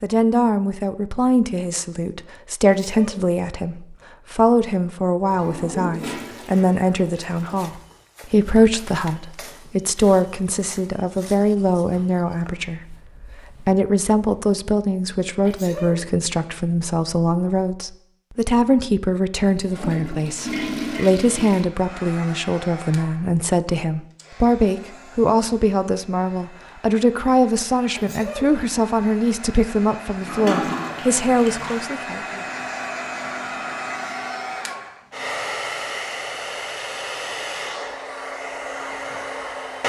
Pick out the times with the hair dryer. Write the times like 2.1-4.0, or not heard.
21.7-39.8.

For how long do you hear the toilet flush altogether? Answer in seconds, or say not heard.
6 s.